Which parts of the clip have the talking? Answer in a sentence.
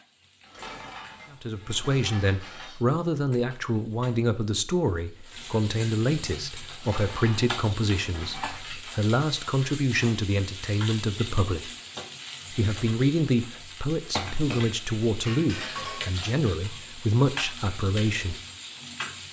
You can hear the talking from 1.3 to 11.7 s and from 12.5 to 18.4 s.